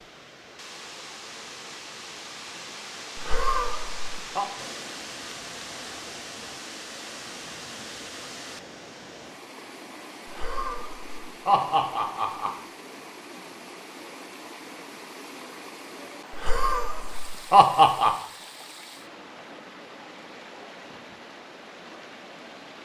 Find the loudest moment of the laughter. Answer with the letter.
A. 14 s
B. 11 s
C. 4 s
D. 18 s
D.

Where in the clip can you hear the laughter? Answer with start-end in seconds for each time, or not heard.
3.1-4.5, 10.2-12.5, 16.3-18.1.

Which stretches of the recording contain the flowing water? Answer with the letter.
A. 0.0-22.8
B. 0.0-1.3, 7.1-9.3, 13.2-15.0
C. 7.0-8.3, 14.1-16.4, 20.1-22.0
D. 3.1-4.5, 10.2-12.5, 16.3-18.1
A.